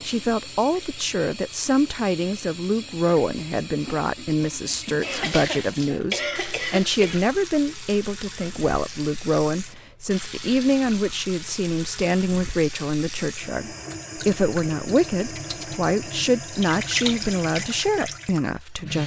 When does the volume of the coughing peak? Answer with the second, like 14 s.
6 s.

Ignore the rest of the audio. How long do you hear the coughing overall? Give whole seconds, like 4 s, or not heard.
2 s.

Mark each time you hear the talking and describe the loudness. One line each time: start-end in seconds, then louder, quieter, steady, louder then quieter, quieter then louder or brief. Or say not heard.
0.0-19.0 steady.